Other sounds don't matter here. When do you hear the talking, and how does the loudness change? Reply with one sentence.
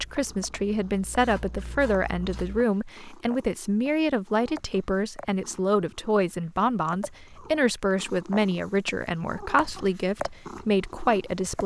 You can hear the talking from 0.0 to 11.6 s, at a steady volume.